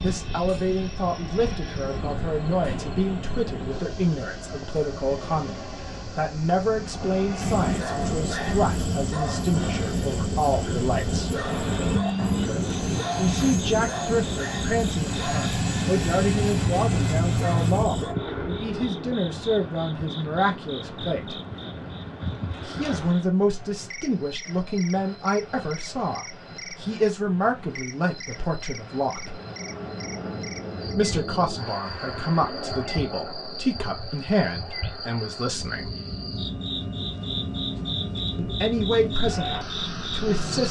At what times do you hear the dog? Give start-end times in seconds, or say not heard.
7.4-18.1.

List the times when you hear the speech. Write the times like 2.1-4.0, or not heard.
0.0-11.4, 13.2-21.4, 22.6-29.4, 30.9-35.9, 38.4-40.6.